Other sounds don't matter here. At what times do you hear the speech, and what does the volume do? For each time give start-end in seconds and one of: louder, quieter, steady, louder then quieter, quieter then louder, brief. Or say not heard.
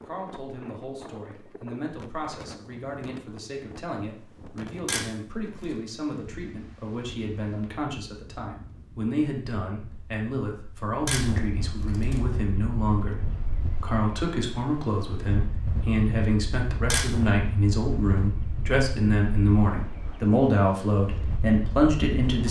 0.0-22.4 louder.